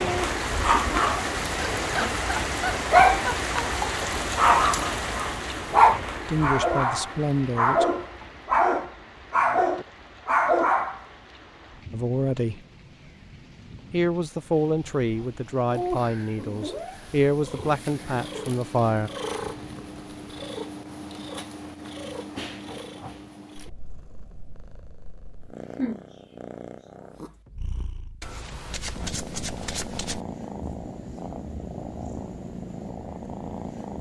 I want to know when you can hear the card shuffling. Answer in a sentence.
The card shuffling can be heard from 28.2 to 30.2 s.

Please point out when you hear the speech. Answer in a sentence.
The speech can be heard from 6.2 to 7.8 s, from 11.9 to 12.6 s and from 13.9 to 19.1 s.